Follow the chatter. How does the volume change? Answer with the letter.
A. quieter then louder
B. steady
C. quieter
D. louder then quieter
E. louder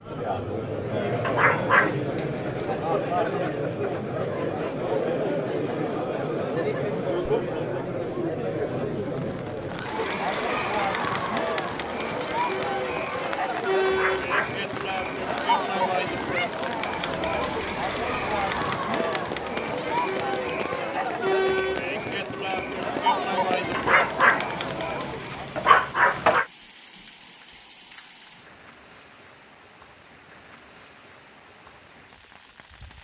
B.